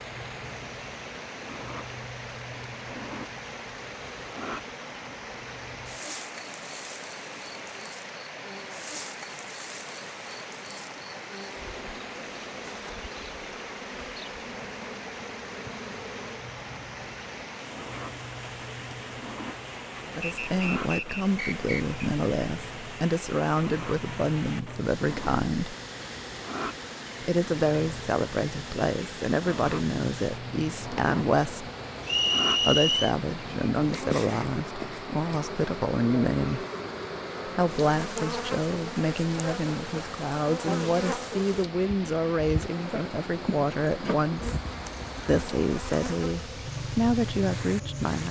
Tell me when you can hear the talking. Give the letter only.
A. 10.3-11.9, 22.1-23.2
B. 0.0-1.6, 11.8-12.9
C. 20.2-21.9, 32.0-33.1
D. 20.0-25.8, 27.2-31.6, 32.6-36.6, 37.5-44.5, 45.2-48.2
D.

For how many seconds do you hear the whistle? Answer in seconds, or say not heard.
3 s.